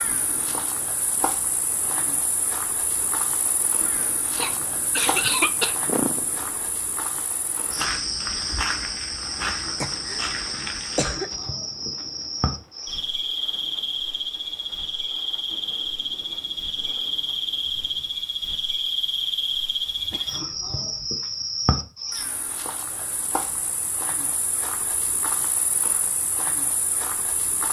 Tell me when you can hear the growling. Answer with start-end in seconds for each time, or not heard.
not heard.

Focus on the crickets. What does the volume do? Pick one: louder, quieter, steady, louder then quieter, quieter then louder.
louder then quieter.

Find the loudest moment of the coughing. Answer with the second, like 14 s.
5 s.